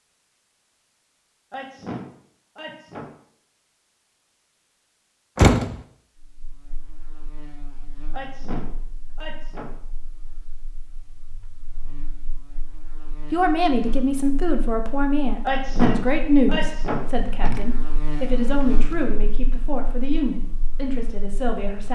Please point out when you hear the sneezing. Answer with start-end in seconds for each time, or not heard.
1.5-3.0, 8.1-9.7, 15.4-17.0.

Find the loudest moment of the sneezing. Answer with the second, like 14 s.
16 s.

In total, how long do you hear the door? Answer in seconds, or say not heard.
2 s.